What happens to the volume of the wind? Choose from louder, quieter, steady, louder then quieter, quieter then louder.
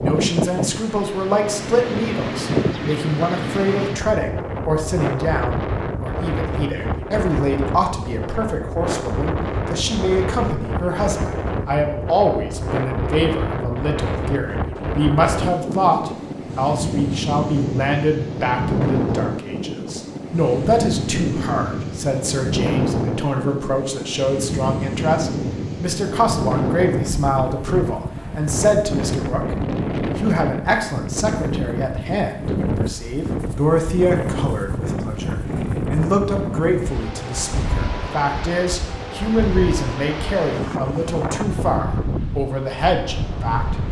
steady.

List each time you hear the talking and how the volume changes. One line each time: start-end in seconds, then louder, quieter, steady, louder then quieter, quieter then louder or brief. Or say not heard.
0.0-43.8 steady.